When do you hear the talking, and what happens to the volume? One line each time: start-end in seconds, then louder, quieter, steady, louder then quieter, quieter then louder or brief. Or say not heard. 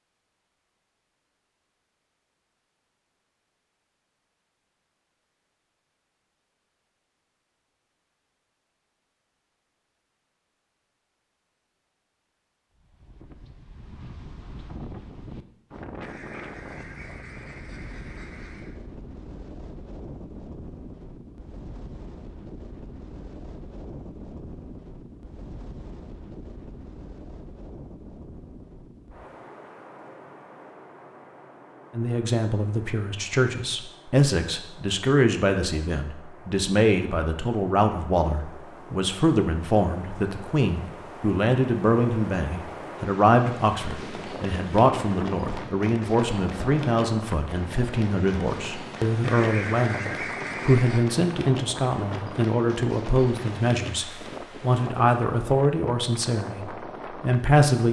31.9-57.8 steady.